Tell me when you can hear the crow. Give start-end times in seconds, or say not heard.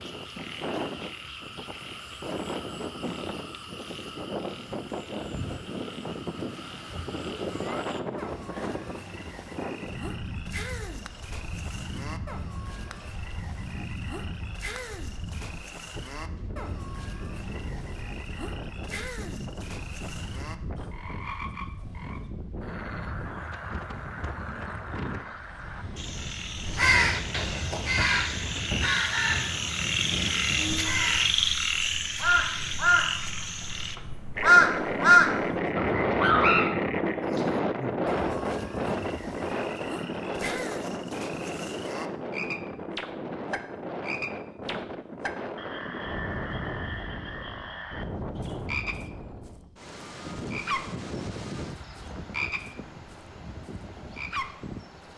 26.7-36.7.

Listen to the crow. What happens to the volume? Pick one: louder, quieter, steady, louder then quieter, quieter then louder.
louder.